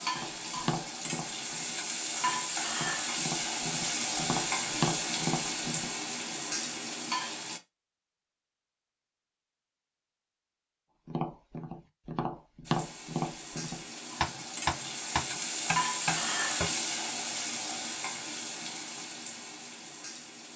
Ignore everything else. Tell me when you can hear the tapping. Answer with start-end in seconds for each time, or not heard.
0.1-5.9, 11.1-16.7.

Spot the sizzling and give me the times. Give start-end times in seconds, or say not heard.
0.0-7.6, 12.7-20.5.